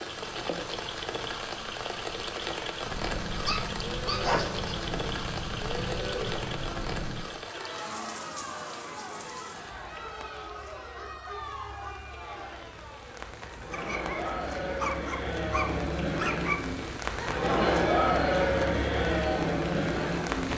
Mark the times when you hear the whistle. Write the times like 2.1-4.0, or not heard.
not heard.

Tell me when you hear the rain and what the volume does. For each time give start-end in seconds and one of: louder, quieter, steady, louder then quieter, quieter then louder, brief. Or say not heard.
0.0-20.5 quieter then louder.